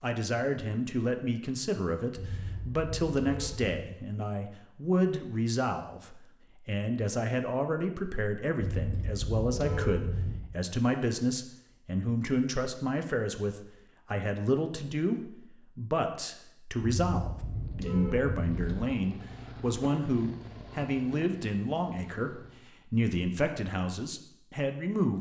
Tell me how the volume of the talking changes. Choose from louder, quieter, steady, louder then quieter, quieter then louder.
steady.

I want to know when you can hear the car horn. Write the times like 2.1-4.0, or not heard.
2.1-3.8, 8.6-10.4, 16.9-18.8.